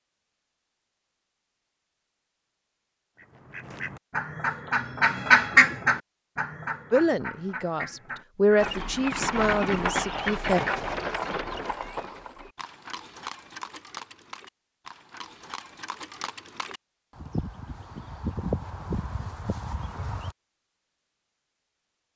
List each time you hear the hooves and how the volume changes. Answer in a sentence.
The hooves can be heard from 8.6 to 20.4 s, getting quieter then louder.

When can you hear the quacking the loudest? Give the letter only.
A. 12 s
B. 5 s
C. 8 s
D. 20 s
B.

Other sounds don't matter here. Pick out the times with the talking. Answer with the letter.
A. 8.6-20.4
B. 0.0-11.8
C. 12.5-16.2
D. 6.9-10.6
D.